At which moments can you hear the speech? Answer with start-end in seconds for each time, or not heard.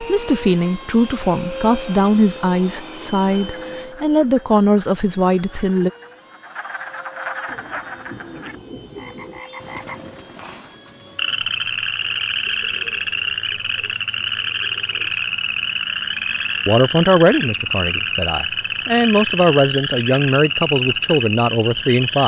0.0-5.9, 16.6-22.2.